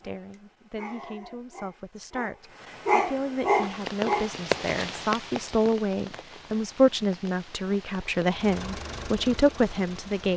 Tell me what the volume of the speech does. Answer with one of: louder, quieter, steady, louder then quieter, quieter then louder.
louder.